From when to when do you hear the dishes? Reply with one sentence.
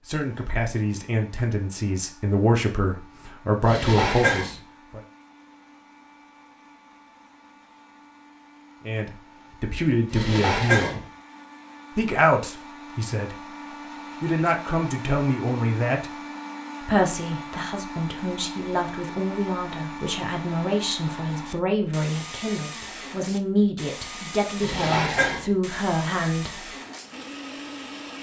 The dishes can be heard from 3.6 to 4.6 s, from 10.1 to 11.1 s and from 24.6 to 25.5 s.